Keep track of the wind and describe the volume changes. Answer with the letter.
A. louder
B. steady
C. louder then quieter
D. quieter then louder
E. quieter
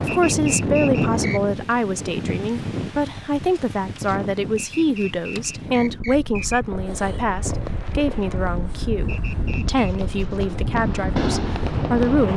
D.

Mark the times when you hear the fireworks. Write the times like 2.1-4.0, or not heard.
6.7-12.3.